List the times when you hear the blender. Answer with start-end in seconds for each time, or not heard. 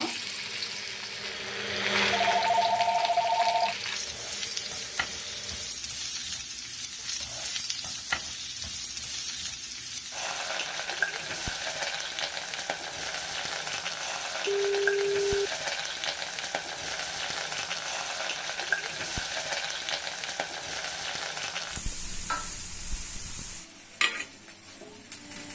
0.0-5.8.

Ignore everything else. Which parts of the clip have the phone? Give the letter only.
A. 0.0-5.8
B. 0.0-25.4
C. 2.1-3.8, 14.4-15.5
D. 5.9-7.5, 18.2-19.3
C.